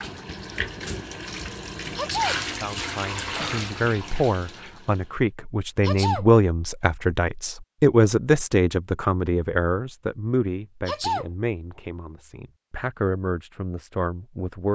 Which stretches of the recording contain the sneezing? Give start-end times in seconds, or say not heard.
1.9-2.4, 5.8-6.2, 10.8-11.2.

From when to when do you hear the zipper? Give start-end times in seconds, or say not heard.
not heard.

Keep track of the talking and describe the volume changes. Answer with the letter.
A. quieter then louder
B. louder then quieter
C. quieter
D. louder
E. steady
B.